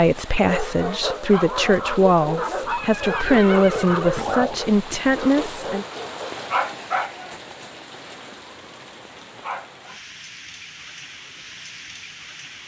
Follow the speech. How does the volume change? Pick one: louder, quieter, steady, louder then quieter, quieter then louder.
steady.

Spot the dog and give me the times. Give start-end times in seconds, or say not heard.
0.3-6.2.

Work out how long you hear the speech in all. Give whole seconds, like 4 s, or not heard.
6 s.